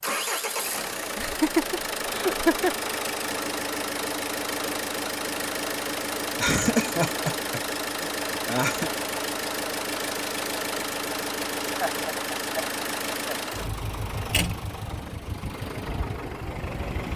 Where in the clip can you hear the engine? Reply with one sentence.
The engine can be heard from 0.0 to 17.1 s.